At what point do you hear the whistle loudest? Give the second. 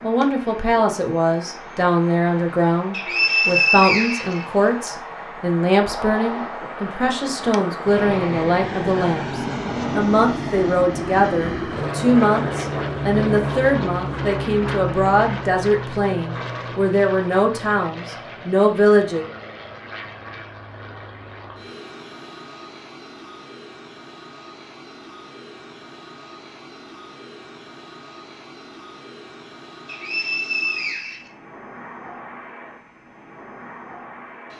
4 s.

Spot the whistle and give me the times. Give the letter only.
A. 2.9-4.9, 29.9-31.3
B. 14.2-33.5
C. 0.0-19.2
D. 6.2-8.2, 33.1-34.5
A.